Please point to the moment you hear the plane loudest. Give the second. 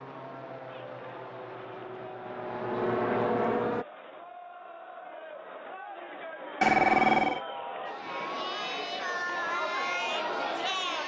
3 s.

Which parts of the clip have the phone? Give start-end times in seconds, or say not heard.
6.6-7.4.